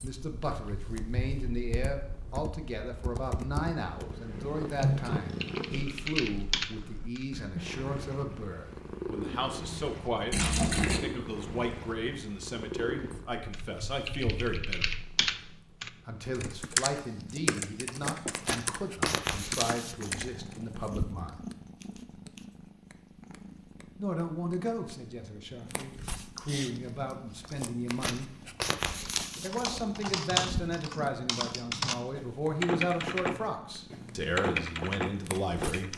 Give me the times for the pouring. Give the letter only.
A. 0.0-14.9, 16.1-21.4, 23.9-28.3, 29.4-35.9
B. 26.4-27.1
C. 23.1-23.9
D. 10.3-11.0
D.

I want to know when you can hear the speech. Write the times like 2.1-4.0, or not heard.
0.0-14.9, 16.1-21.4, 23.9-28.3, 29.4-35.9.